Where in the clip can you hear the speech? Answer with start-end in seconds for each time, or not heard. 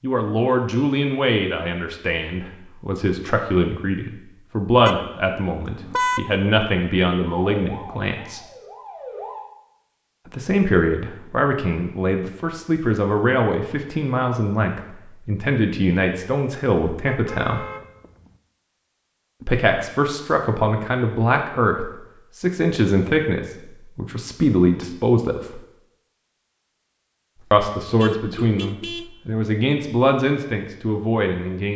0.0-8.4, 10.3-17.6, 19.4-25.6, 27.5-31.7.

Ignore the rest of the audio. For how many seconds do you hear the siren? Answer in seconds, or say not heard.
2 s.